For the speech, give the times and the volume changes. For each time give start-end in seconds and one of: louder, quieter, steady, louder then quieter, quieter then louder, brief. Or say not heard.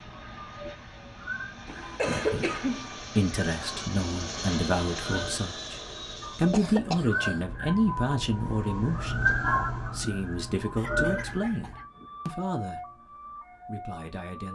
2.0-14.5 quieter.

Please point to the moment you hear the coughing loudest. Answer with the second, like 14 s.
2 s.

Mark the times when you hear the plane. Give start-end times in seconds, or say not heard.
0.0-6.7.